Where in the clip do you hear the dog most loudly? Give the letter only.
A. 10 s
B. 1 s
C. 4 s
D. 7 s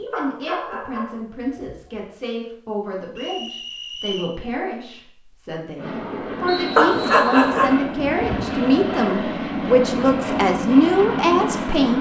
D.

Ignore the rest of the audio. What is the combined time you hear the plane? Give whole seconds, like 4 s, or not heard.
6 s.